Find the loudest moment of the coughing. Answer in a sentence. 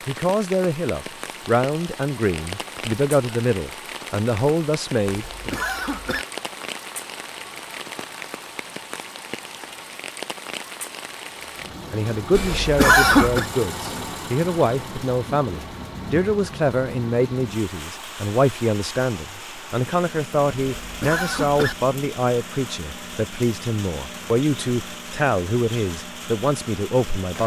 The loudest moment of the coughing is at 13 seconds.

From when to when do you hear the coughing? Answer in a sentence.
The coughing can be heard from 5.1 to 6.2 s, from 12.3 to 13.4 s and from 20.8 to 21.8 s.